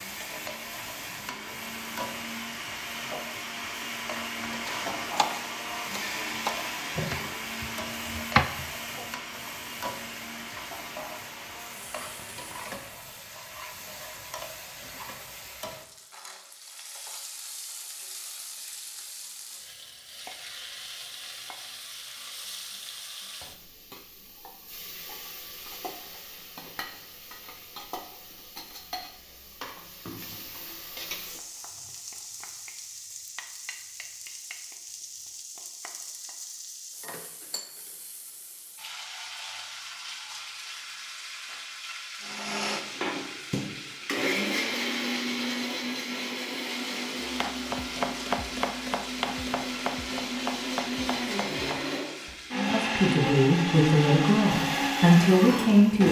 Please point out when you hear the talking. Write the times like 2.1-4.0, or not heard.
52.5-56.0.